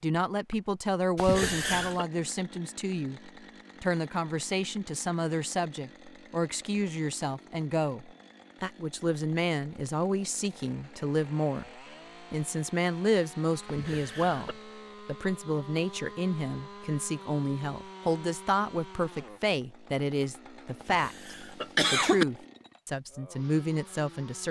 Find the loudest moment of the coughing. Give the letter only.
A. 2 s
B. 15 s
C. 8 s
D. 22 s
D.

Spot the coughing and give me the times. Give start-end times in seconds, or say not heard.
1.1-2.0, 13.7-14.6, 20.8-22.2.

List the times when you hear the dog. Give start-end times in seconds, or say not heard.
not heard.